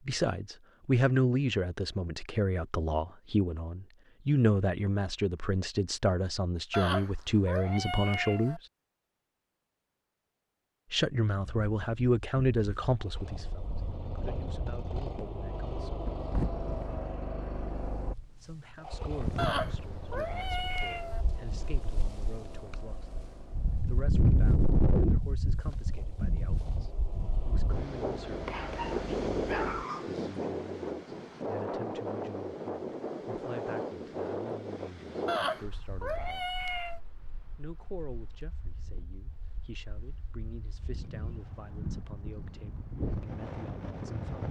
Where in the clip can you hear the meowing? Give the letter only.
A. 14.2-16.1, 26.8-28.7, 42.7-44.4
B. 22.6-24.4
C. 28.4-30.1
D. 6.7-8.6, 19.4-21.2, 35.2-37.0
D.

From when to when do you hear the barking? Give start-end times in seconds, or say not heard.
28.4-30.1.